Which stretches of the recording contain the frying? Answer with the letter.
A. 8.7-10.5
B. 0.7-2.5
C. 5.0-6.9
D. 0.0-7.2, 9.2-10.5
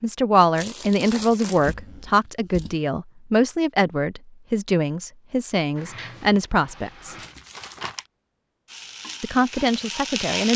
A.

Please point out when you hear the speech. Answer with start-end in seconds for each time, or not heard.
0.0-7.2, 9.2-10.5.